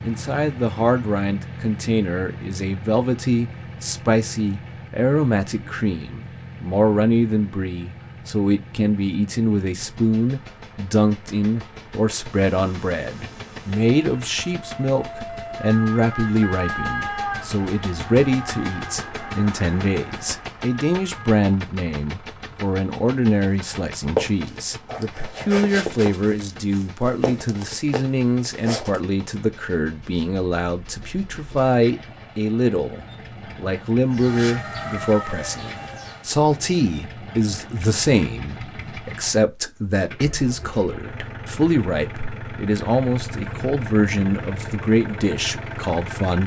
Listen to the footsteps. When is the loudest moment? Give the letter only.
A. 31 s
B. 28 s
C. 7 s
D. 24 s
D.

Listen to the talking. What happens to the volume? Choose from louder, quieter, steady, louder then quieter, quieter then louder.
steady.